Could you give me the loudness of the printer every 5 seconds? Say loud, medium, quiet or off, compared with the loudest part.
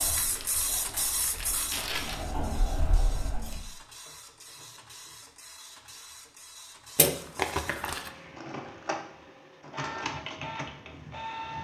loud, medium, loud.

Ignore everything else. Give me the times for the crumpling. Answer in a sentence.
The crumpling can be heard from 0.1 to 2.1 s and from 7.0 to 8.1 s.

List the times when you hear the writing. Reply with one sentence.
The writing can be heard from 0.0 to 3.6 s.